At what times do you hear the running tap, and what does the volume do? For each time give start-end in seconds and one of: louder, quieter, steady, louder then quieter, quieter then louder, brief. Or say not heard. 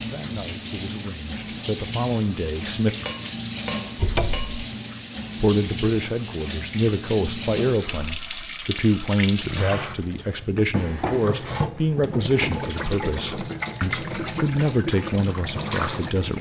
0.0-16.3 steady.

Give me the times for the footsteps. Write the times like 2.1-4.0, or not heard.
not heard.